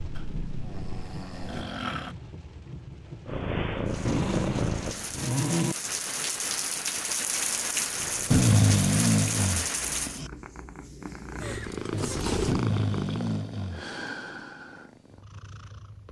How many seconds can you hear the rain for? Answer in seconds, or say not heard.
10 s.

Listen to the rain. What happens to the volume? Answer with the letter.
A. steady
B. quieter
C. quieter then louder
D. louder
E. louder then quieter
D.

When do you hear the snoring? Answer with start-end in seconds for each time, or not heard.
0.1-2.1, 4.0-5.8, 8.3-10.3, 12.4-13.8.